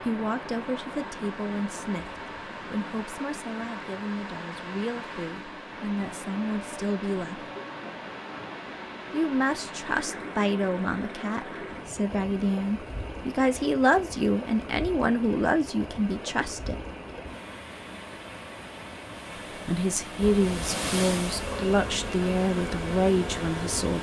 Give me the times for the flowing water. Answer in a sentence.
You can hear the flowing water from 0.0 to 23.9 s.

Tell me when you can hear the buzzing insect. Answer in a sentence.
The buzzing insect can be heard from 20.2 to 23.9 s.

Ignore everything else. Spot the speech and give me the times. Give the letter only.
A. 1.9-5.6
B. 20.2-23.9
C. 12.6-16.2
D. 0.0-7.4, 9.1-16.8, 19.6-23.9
D.